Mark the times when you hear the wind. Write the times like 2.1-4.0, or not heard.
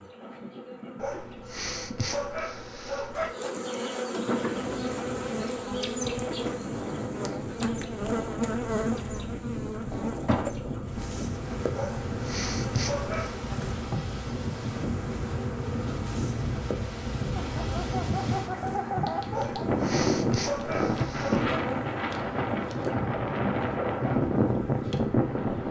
4.2-25.6.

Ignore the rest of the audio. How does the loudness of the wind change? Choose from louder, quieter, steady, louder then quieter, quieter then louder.
louder.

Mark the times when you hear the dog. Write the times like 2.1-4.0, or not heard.
0.9-3.4, 11.8-13.4, 19.3-21.6.